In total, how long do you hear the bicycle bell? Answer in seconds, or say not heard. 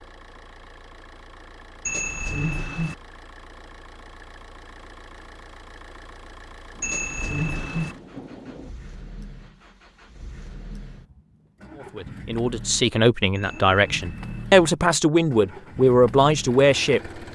3 s.